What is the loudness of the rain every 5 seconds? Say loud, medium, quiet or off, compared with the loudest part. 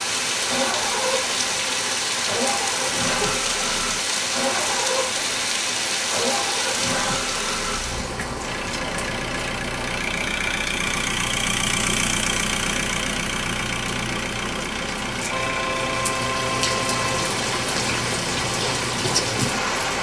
loud, loud, medium, loud.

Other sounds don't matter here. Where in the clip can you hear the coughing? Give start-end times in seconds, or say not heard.
not heard.